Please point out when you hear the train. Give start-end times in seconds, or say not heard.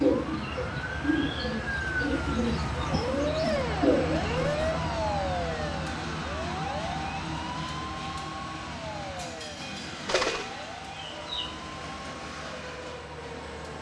0.0-13.7.